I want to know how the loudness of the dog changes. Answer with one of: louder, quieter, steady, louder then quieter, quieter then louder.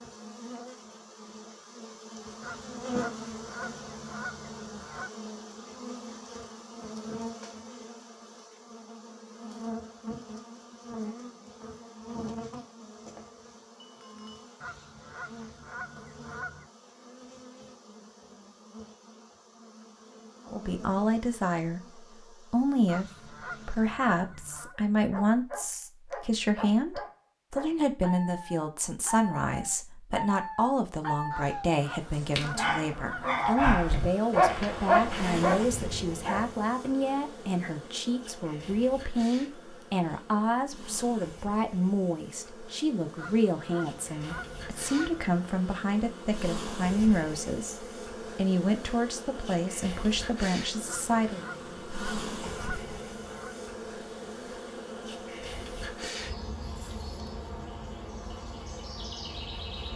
louder.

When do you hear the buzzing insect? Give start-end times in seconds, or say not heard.
0.0-23.9, 31.9-59.9.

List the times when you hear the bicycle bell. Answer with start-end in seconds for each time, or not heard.
13.8-14.5.